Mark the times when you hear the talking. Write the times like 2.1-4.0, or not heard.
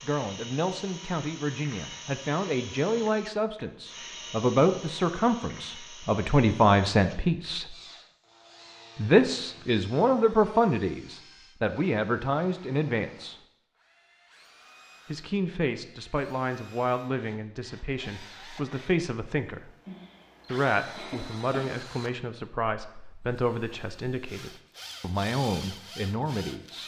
0.0-7.8, 8.9-13.4, 15.1-19.7, 20.5-26.8.